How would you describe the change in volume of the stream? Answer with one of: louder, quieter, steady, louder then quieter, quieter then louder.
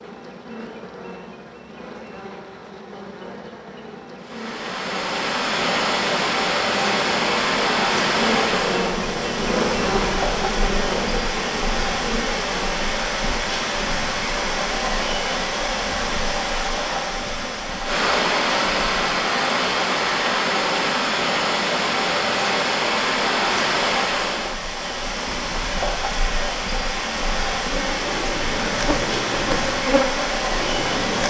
steady.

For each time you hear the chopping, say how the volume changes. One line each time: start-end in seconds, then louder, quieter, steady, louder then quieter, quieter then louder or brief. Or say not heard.
not heard.